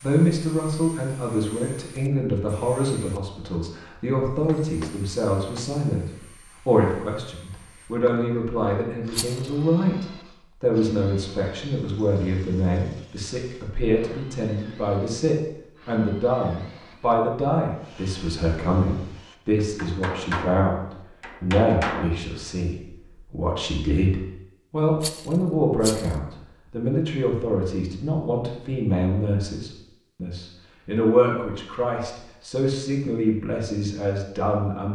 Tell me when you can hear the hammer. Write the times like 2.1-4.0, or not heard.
4.6-5.7, 19.6-22.2.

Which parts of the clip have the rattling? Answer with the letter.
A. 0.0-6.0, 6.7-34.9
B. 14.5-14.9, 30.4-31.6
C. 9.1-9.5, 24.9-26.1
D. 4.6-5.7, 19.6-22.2
C.